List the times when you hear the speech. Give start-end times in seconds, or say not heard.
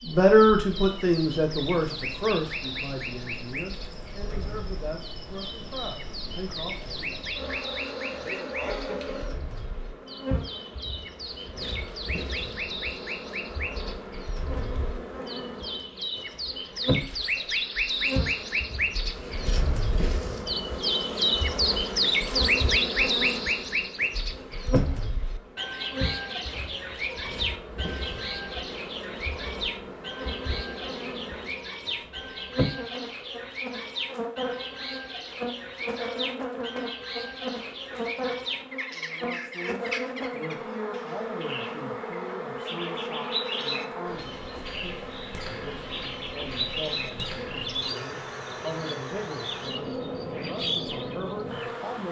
0.0-7.0, 38.9-52.0.